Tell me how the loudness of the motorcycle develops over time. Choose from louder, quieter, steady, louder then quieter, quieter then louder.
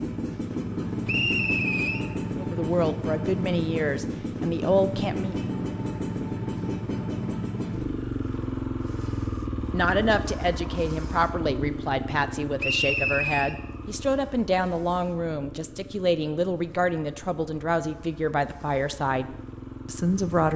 quieter.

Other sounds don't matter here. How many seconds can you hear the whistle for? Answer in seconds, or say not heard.
2 s.